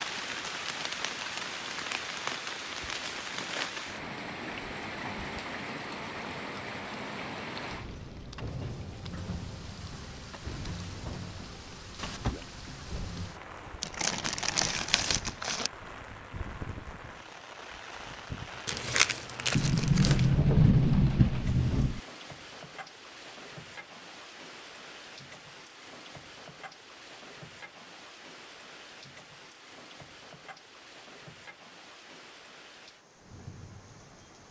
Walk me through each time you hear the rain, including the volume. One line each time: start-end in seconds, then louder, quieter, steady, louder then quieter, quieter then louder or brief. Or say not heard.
0.0-34.4 quieter.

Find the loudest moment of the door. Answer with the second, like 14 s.
21 s.